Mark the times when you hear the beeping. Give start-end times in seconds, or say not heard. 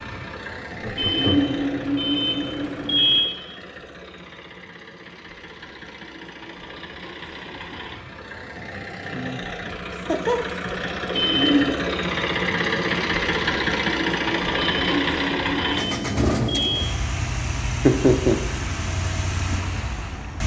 0.9-3.2, 11.1-11.9, 14.6-16.9.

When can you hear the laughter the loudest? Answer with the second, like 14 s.
18 s.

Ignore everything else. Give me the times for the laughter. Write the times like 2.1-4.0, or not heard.
0.8-1.4, 9.9-10.4, 17.8-18.4.